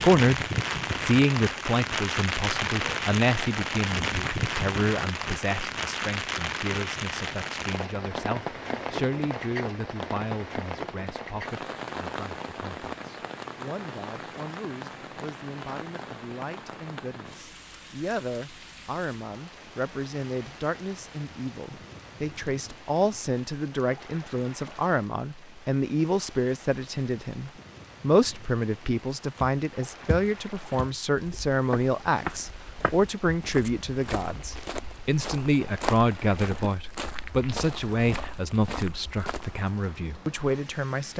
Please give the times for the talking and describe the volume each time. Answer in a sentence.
You can hear the talking from 0.0 to 41.1 s, getting quieter then louder.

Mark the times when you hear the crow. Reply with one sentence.
The crow can't be heard in this clip.